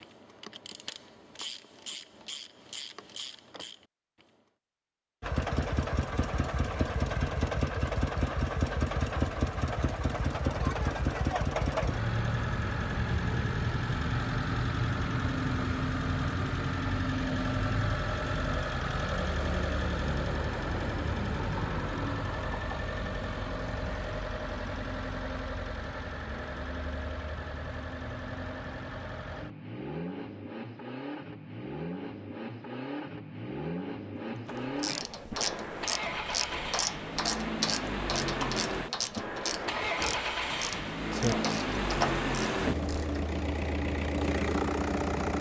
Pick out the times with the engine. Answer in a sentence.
The engine can be heard from 5.2 to 45.3 s.